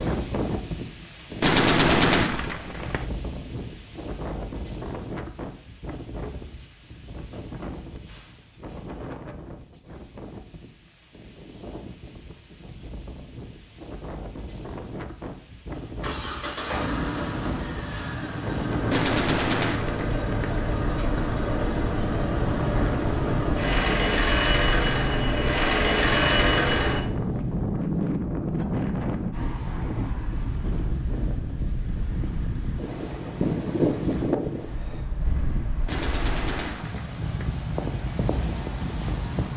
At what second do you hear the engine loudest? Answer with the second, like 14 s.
26 s.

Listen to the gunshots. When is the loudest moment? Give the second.
2 s.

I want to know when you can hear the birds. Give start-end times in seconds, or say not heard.
not heard.